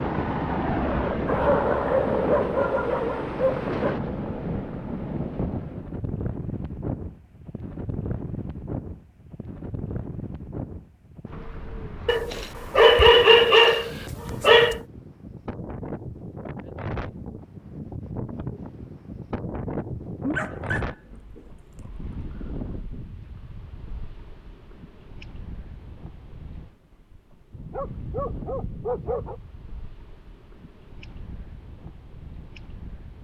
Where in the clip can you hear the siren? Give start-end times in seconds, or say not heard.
not heard.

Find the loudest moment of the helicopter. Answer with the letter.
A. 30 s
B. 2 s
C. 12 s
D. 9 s
B.